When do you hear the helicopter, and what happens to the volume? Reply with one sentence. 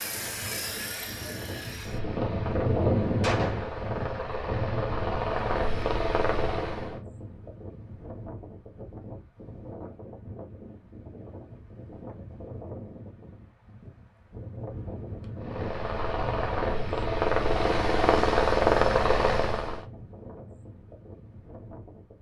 You can hear the helicopter from 0.0 to 7.0 s, getting louder; and from 15.4 to 19.9 s, getting louder.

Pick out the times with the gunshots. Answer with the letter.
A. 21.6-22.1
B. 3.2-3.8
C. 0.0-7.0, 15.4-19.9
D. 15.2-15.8
B.